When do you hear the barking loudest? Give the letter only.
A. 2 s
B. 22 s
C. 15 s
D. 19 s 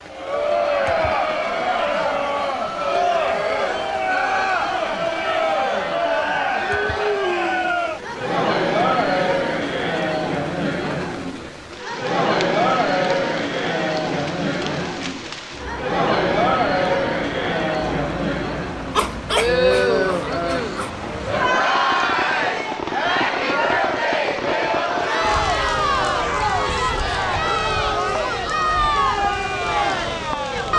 D.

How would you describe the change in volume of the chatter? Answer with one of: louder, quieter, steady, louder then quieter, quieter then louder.
steady.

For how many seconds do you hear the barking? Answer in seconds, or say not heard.
2 s.